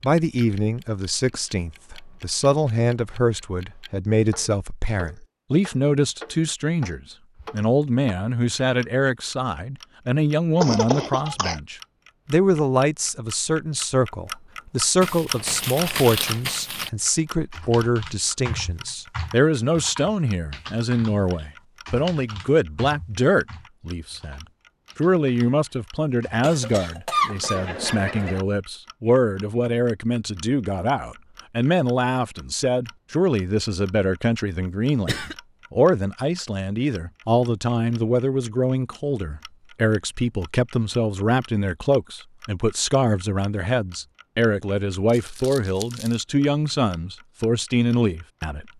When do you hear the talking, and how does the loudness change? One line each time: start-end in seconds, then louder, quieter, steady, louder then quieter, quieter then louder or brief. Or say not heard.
0.0-48.6 steady.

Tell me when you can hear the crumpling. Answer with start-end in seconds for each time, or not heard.
15.0-16.9, 45.0-46.2.